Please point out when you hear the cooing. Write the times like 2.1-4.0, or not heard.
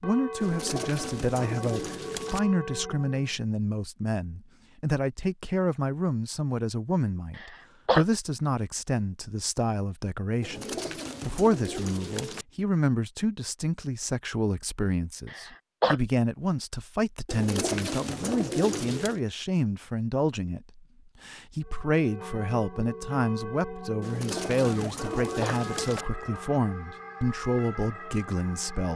0.4-2.4, 10.4-12.4, 17.2-19.2, 24.0-26.1.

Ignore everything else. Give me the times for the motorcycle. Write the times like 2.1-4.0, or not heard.
not heard.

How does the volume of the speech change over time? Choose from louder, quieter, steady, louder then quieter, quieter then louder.
steady.